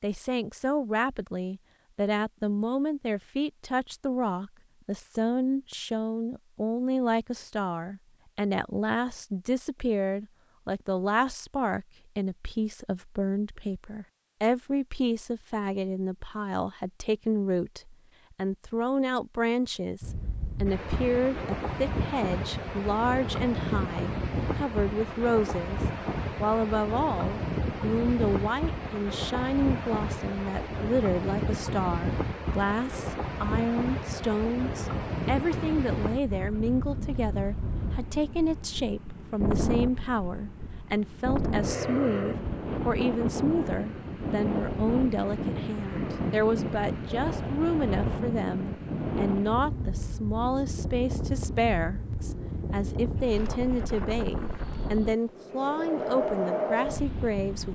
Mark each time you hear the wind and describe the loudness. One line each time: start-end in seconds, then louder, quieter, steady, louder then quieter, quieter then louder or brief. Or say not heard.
20.0-57.7 steady.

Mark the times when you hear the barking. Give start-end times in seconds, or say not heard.
not heard.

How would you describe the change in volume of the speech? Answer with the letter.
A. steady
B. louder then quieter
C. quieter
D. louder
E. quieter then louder
A.